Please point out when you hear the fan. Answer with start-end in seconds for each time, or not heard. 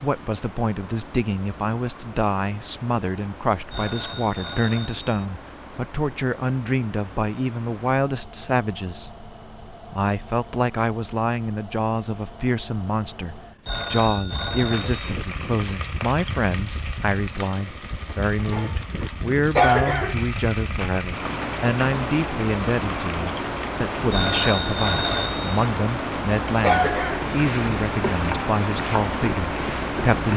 0.0-30.3.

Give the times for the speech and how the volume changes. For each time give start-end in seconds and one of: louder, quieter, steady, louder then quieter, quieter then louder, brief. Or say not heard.
0.0-9.2 steady
9.9-30.3 steady.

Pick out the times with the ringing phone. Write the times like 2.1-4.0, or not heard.
3.7-5.0, 13.7-15.0, 24.1-25.5.